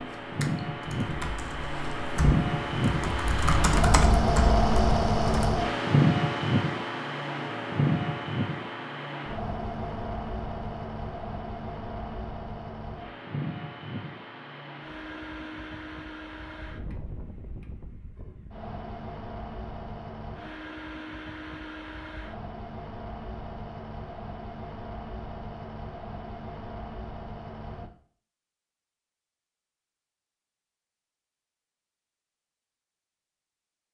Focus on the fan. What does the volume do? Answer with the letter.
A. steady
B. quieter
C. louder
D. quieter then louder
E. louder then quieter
B.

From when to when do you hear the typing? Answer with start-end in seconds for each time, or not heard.
0.0-5.5.